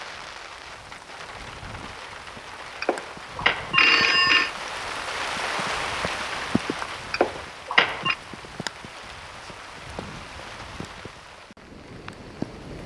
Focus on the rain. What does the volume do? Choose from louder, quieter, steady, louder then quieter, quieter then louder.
louder then quieter.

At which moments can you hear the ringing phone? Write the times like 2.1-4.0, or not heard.
2.8-4.5, 7.1-8.2.